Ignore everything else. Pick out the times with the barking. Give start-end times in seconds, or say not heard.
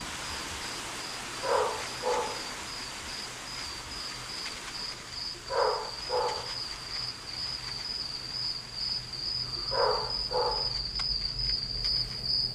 1.2-2.5, 5.3-6.5, 9.6-10.8.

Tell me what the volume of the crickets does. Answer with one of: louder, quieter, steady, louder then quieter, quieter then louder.
louder.